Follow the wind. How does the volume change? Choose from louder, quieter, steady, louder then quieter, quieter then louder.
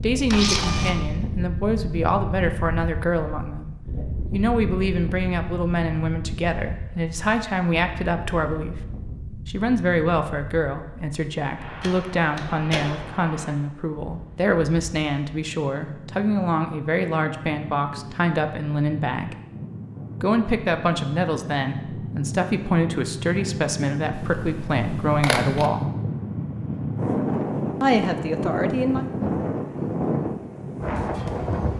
quieter then louder.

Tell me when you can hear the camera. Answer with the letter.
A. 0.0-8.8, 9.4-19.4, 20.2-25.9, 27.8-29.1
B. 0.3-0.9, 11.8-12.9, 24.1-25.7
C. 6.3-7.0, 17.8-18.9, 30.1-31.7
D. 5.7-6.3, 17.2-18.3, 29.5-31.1
B.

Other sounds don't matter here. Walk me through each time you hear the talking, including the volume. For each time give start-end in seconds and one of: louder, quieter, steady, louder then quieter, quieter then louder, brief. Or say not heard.
0.0-8.8 steady
9.4-19.4 steady
20.2-25.9 steady
27.8-29.1 brief.